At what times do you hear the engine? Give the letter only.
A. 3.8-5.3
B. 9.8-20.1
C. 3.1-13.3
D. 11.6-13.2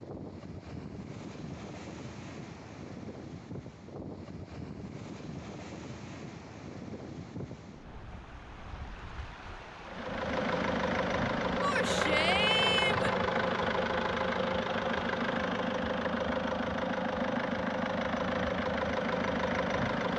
B.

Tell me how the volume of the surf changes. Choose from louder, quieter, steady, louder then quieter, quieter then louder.
steady.